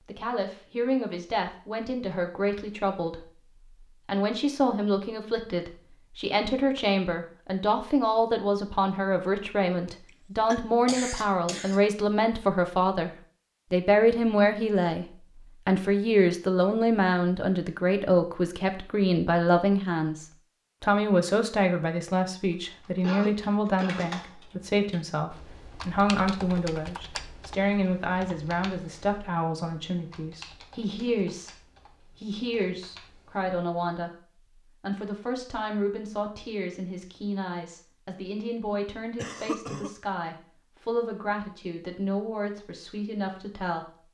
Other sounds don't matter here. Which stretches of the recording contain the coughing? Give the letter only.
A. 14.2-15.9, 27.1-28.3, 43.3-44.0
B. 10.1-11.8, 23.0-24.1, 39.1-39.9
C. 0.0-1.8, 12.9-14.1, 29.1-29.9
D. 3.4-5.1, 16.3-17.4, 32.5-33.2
B.